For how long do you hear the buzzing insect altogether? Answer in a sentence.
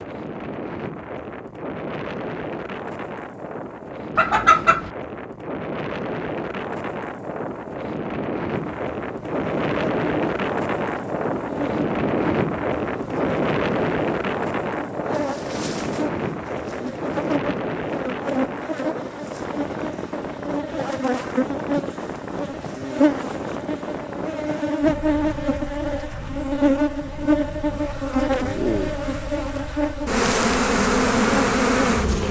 The buzzing insect can be heard for 24 seconds in total.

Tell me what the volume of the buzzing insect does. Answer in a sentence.
The loudness of the buzzing insect goes up.